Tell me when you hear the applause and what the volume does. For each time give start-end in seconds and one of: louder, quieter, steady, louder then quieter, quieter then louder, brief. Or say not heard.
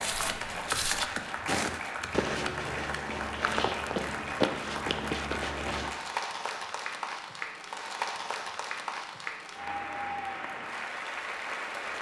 0.0-11.9 steady.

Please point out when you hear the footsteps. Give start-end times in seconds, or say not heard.
0.0-6.0.